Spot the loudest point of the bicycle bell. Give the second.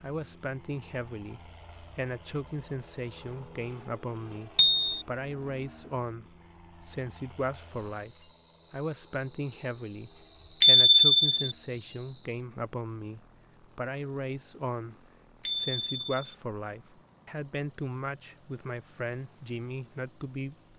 11 s.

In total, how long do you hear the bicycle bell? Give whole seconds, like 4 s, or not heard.
2 s.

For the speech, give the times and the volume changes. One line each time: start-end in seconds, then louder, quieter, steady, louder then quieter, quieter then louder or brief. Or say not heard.
0.0-20.7 steady.